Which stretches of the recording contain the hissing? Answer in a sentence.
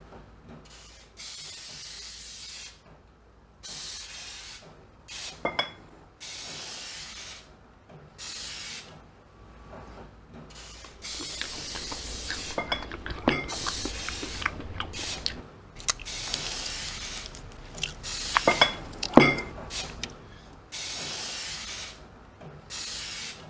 The hissing can be heard from 0.0 to 23.4 s.